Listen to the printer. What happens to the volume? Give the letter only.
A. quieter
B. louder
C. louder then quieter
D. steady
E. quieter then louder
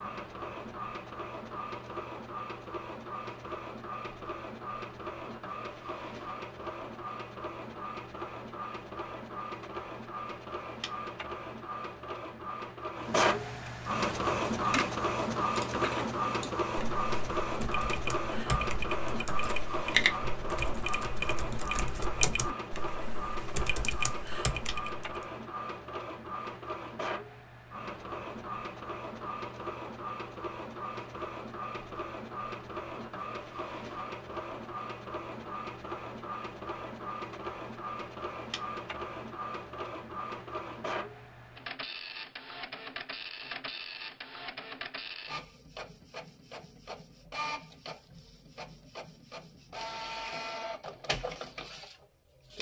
C.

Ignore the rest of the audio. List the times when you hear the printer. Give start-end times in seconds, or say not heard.
0.0-52.5.